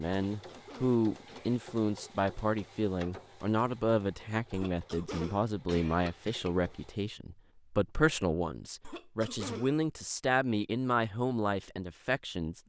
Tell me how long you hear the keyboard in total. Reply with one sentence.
You can't hear the keyboard here.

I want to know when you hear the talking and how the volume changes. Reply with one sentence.
You can hear the talking from 0.0 to 12.6 s, at a steady volume.